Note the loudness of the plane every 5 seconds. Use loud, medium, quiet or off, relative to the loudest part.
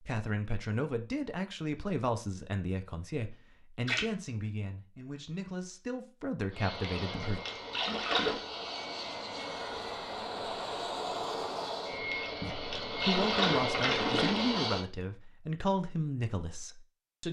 off, medium, loud, off.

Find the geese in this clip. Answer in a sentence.
The geese can't be heard in this clip.